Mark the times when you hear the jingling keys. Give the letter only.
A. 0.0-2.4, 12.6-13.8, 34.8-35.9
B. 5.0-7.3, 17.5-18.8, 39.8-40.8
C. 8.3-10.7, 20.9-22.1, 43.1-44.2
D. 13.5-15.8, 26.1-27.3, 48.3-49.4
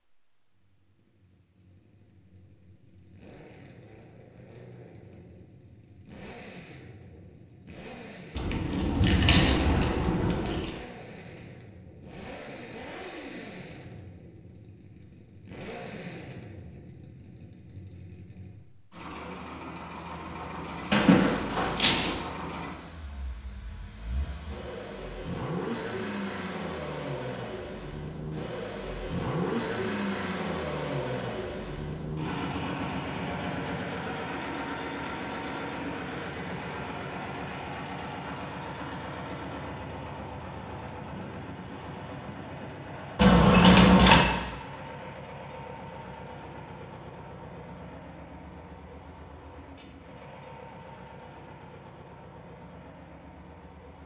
C.